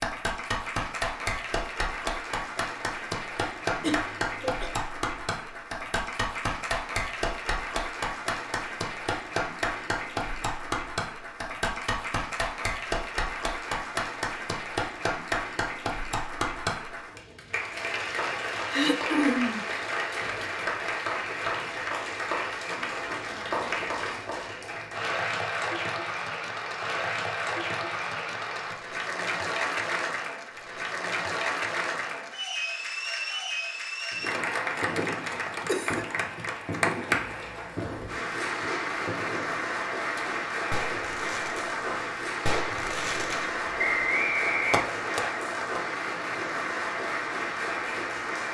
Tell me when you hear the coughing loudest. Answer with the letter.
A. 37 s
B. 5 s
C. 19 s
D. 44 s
C.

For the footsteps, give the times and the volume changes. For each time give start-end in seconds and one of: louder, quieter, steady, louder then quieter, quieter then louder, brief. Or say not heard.
not heard.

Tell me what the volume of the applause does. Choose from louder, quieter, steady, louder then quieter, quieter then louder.
steady.